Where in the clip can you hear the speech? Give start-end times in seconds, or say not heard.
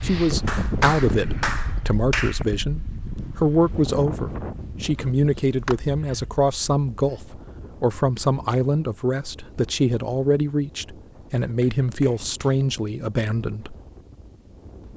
0.0-13.8.